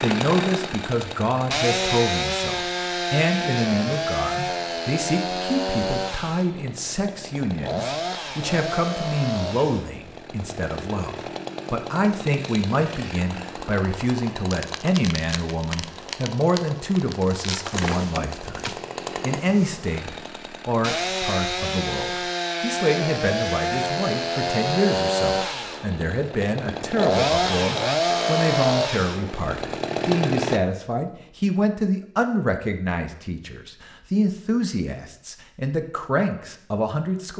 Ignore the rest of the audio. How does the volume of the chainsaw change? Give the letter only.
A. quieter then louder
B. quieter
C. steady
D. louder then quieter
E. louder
A.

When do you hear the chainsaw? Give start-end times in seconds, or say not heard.
0.0-30.6.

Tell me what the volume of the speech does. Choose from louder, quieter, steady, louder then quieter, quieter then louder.
steady.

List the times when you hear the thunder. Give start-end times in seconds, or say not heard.
not heard.